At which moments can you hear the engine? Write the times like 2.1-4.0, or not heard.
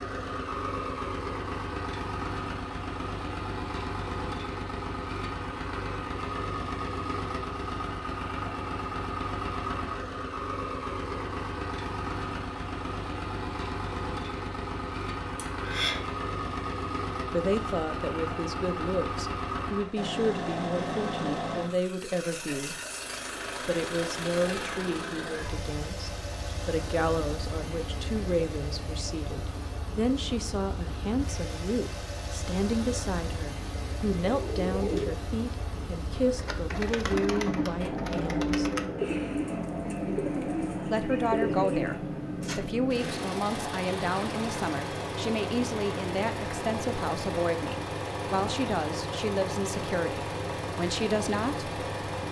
0.0-52.2.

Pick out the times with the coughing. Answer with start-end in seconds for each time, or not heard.
15.3-16.0.